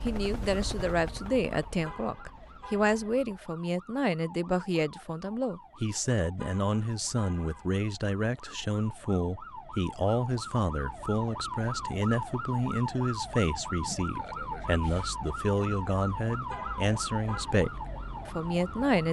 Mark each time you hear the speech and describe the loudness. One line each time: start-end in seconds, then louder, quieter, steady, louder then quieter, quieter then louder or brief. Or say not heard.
0.0-19.0 steady.